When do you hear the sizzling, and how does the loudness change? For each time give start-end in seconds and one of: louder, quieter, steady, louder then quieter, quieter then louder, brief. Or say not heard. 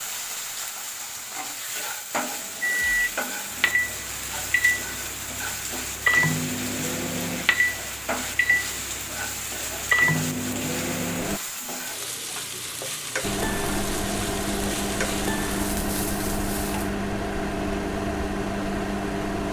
0.0-16.9 steady.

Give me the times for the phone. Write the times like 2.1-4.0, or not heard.
not heard.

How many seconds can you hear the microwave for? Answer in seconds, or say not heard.
15 s.